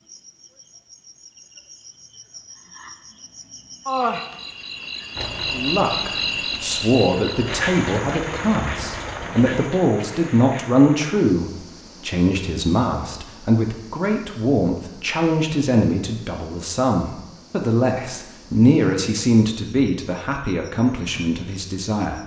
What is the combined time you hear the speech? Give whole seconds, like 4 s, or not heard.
17 s.